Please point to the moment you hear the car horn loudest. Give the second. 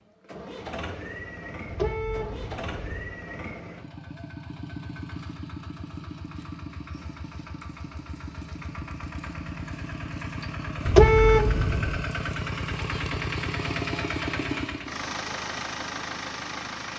11 s.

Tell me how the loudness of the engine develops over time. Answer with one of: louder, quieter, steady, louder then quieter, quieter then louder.
louder.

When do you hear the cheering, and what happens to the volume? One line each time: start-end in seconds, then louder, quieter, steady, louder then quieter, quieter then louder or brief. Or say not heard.
not heard.